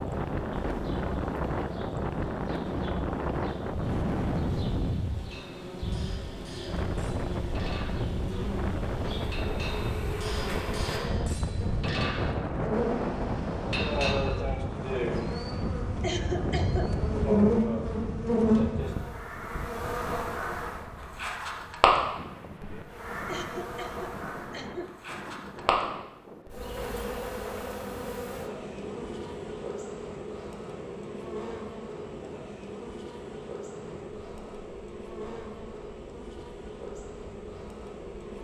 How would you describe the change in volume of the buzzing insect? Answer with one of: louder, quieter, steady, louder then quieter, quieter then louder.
louder then quieter.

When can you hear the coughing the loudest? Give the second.
16 s.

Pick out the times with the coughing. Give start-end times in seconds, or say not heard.
16.0-16.9, 23.2-24.9.